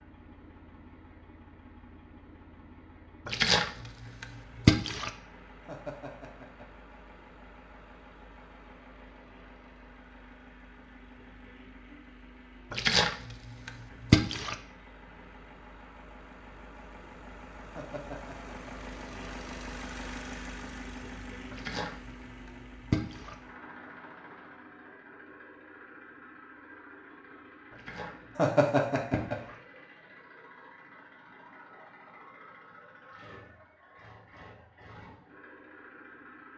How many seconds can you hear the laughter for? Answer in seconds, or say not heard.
3 s.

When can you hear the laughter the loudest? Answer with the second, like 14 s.
29 s.